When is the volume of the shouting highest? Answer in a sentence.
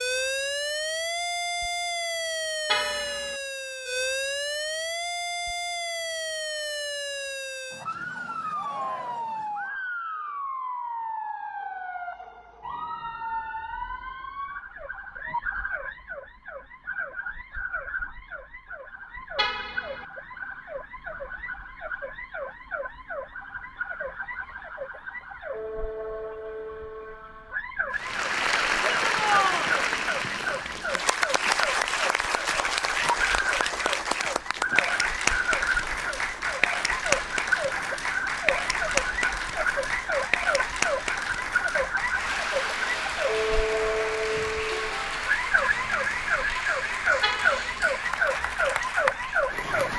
The volume of the shouting peaks at 29 seconds.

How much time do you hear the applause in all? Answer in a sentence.
The applause can be heard for 22 seconds in total.